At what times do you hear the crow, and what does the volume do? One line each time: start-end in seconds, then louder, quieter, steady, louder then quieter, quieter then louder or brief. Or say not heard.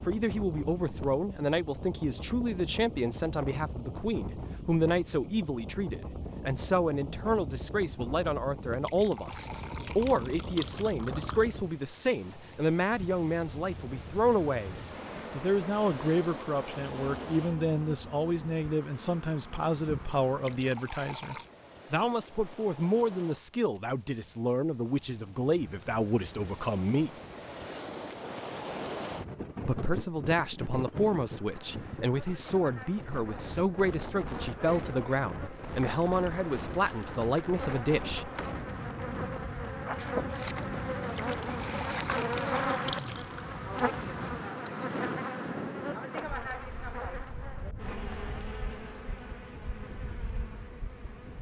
not heard.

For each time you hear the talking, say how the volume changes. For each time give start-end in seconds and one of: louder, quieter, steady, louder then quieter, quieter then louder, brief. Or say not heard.
0.0-27.1 steady
29.6-38.3 steady.